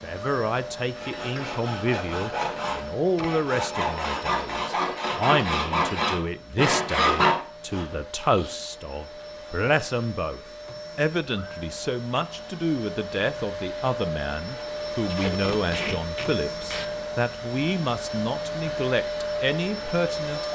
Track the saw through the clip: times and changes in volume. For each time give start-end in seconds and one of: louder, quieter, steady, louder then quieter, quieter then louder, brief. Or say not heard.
0.9-8.0 louder.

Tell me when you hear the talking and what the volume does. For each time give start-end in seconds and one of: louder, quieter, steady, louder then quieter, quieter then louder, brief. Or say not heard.
0.0-20.5 steady.